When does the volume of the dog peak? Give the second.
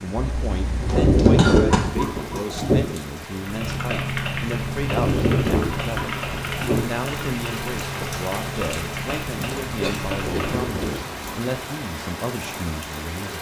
1 s.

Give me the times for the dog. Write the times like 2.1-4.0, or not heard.
0.8-2.8, 4.8-6.8, 10.1-11.5.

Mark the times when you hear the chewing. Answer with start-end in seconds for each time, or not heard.
not heard.